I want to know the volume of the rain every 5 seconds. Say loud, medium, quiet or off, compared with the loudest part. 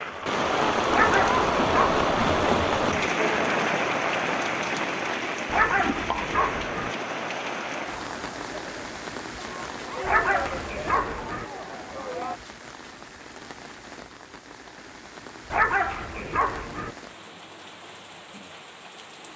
loud, medium, quiet, quiet.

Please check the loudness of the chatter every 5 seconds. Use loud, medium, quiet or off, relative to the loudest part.
loud, medium, medium, off.